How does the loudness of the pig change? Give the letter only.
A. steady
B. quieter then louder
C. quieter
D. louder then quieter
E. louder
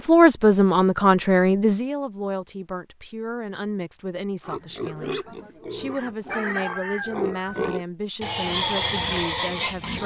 E.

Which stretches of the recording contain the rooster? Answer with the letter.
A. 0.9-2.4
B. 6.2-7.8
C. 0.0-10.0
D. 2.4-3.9
B.